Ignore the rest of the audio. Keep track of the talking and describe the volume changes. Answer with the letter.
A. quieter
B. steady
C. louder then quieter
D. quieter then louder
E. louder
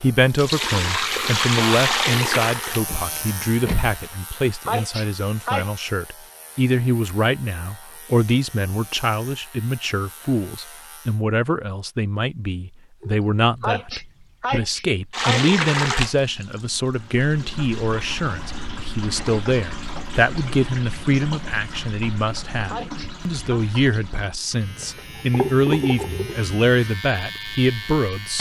B.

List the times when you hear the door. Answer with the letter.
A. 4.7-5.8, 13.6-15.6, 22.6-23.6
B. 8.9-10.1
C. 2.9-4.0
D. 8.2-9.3
C.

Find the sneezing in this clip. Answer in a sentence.
The sneezing can be heard from 4.7 to 5.8 s, from 13.6 to 15.6 s and from 22.6 to 23.6 s.